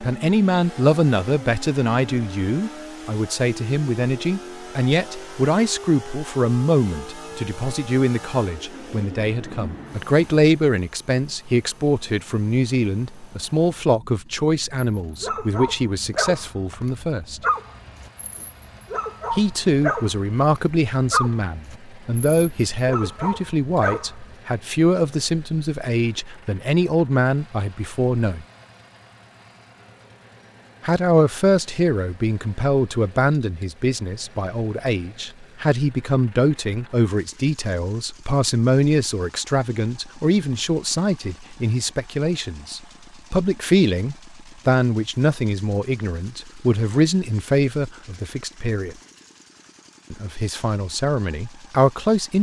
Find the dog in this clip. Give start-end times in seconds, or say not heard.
14.9-24.4.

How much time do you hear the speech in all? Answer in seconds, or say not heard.
47 s.